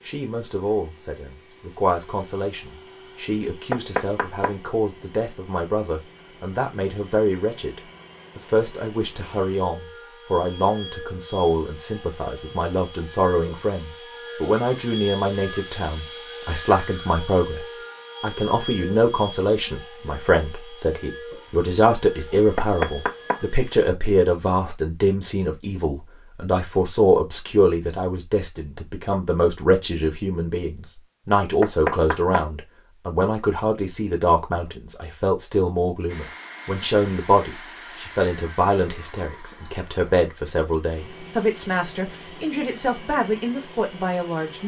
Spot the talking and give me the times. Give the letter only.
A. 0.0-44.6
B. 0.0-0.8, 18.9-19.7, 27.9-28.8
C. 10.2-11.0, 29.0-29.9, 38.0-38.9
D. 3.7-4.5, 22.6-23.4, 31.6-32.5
A.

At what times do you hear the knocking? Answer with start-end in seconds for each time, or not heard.
3.7-4.5, 22.6-23.4, 31.6-32.5.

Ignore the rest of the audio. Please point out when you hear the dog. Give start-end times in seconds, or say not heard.
not heard.